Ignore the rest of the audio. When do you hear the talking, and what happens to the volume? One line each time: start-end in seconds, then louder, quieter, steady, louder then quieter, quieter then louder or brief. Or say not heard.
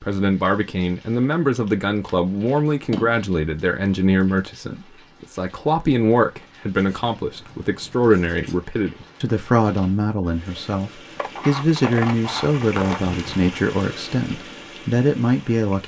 0.0-15.8 steady.